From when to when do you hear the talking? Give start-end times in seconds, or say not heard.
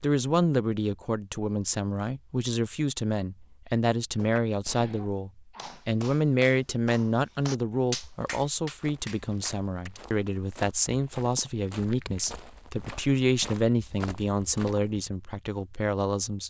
0.0-16.4.